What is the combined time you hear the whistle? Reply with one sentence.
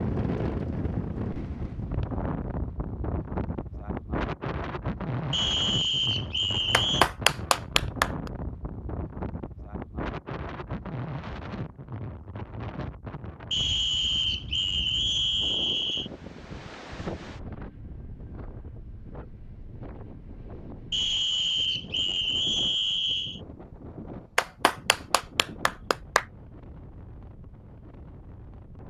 The whistle can be heard for 7 seconds in total.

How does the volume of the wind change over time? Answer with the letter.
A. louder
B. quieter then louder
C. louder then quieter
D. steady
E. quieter
E.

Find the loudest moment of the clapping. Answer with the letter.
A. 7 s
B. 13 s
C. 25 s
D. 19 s
A.